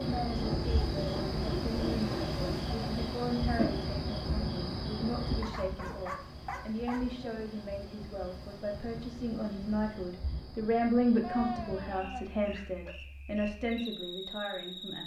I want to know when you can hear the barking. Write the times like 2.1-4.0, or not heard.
0.3-2.7, 5.4-7.0, 11.2-12.9.